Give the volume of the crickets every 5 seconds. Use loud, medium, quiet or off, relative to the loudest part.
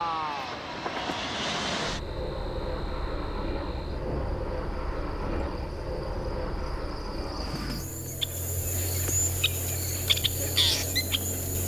quiet, medium, loud.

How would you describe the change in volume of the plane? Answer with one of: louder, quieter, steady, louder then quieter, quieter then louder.
quieter.